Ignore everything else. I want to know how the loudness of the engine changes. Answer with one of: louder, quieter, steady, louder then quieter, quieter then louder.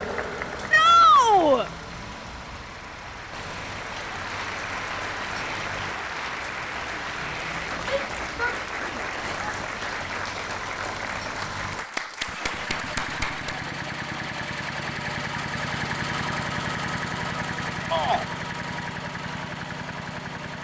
louder.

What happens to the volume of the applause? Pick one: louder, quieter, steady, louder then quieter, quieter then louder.
louder.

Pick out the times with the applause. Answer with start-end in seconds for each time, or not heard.
0.0-13.7.